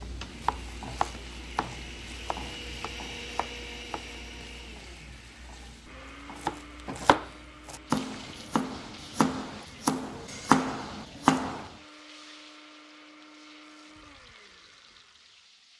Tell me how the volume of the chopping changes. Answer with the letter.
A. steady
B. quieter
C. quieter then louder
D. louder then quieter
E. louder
E.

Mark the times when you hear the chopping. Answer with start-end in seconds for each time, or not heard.
0.5-4.2, 6.4-11.7.